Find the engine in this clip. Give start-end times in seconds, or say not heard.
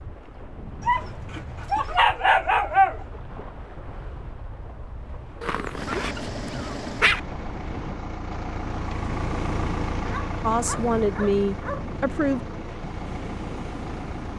5.7-14.3.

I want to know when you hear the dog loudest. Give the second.
3 s.